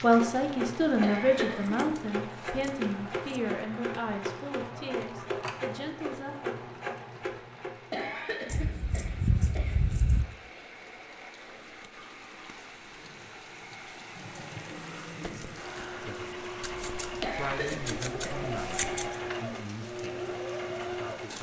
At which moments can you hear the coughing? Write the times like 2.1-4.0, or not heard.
1.0-1.8, 7.9-9.8, 17.2-19.1.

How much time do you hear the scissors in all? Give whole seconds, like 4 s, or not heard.
6 s.